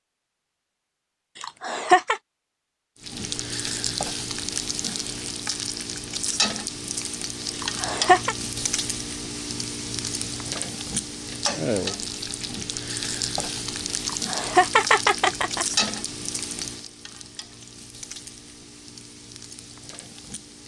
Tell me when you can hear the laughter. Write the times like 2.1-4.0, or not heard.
1.4-2.2, 7.5-8.3, 14.1-15.7.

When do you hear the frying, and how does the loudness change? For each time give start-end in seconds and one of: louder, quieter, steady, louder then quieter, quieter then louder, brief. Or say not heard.
3.0-20.6 quieter.